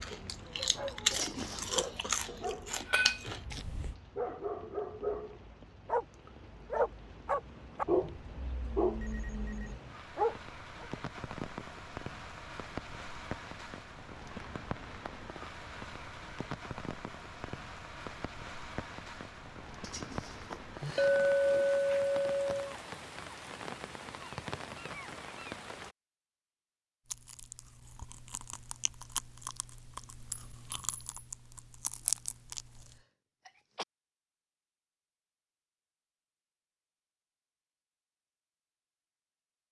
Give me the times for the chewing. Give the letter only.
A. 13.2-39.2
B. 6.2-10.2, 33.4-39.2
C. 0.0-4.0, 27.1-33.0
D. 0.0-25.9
C.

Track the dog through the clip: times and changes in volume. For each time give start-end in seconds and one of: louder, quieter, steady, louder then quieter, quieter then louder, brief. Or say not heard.
0.6-10.9 louder.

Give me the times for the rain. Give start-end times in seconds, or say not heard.
0.0-25.9.